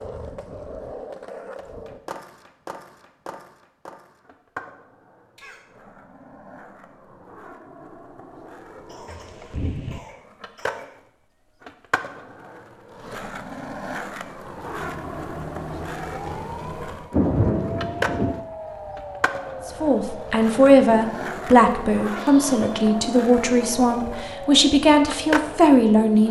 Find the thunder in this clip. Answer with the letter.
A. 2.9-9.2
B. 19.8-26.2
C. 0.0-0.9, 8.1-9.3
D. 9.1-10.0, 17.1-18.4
D.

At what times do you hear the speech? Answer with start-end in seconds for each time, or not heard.
19.8-26.2.